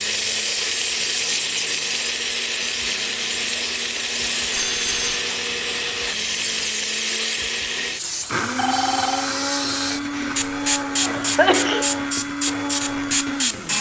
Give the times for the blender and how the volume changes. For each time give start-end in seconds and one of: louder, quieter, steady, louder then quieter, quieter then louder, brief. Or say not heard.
0.0-13.7 steady.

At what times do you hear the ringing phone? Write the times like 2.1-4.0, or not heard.
4.5-5.2, 8.6-9.3.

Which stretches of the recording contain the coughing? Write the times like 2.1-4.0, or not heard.
11.0-12.0.